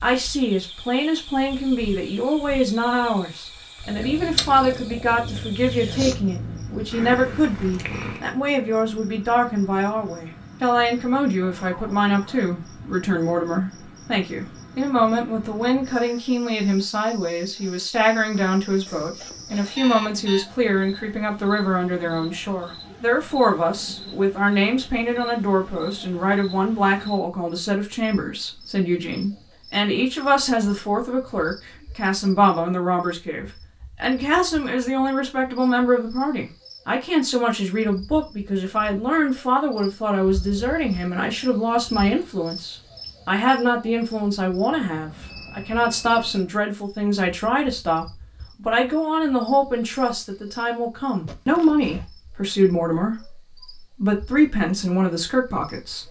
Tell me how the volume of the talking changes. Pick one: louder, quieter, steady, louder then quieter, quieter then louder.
steady.